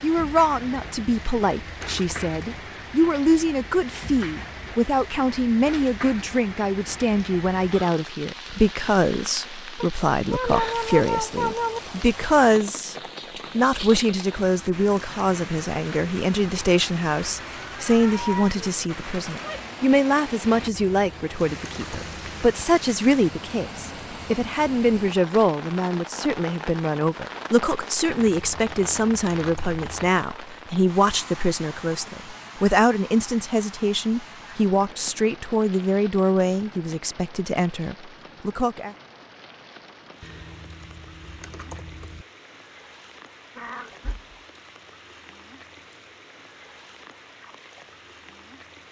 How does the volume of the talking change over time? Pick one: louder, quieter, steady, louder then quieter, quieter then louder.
steady.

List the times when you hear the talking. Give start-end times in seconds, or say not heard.
0.0-12.9, 13.6-39.0.